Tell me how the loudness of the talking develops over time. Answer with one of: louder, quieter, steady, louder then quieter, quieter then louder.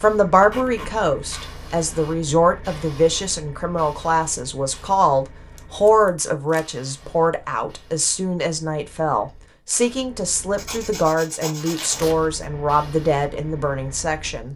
steady.